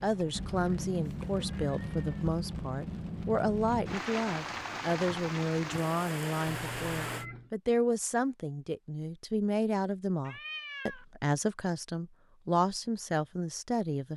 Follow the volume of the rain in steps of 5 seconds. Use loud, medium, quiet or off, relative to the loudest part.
loud, loud, off.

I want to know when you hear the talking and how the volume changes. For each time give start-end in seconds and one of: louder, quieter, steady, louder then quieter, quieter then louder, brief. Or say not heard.
0.0-14.1 steady.